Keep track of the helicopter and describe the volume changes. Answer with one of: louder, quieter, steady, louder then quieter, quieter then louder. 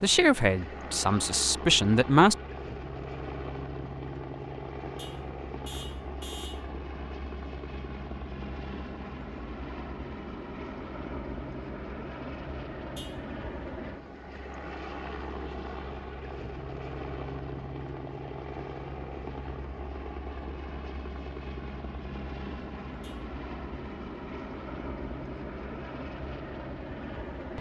steady.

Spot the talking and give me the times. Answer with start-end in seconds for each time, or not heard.
0.0-2.4.